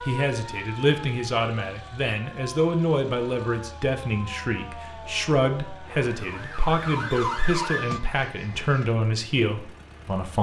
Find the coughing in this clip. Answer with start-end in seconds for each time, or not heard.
not heard.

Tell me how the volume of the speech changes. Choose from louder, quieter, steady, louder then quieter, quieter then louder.
steady.